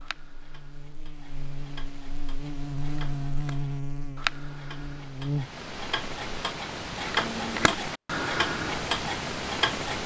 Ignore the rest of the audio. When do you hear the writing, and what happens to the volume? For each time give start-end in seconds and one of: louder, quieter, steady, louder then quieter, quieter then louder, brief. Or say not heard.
not heard.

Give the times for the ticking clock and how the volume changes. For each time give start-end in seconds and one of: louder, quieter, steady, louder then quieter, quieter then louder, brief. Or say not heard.
0.0-10.0 louder.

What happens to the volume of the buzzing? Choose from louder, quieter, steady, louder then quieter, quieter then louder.
louder then quieter.